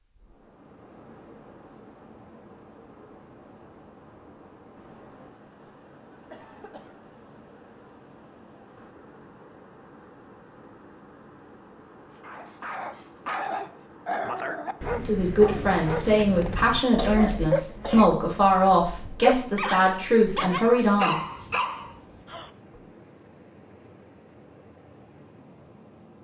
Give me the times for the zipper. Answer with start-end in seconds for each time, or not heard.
not heard.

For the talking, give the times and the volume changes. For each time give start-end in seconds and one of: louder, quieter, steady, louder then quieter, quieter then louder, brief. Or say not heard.
14.9-21.1 steady.